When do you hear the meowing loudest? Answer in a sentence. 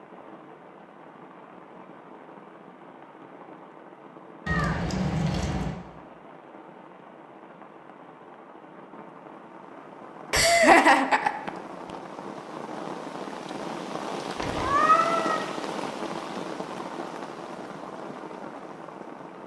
The loudest moment of the meowing is at 15 seconds.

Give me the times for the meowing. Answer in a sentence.
You can hear the meowing from 4.5 to 5.8 s and from 14.3 to 15.4 s.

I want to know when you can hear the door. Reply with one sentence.
The door can't be heard in this clip.